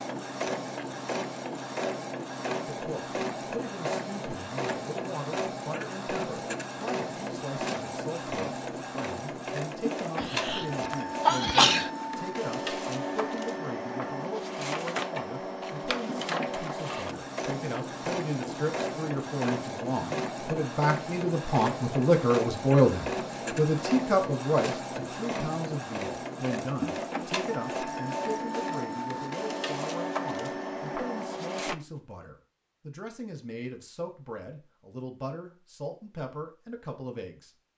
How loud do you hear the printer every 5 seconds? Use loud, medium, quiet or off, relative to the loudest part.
loud, loud, loud, loud, loud, loud, loud, off.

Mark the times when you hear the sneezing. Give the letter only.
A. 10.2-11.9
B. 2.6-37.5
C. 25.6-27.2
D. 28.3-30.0
A.